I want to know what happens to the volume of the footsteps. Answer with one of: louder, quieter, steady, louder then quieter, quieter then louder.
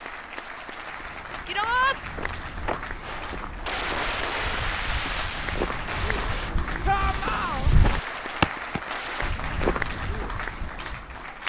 louder then quieter.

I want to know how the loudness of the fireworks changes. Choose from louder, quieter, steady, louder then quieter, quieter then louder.
quieter.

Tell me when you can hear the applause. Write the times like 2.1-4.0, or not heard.
0.0-11.4.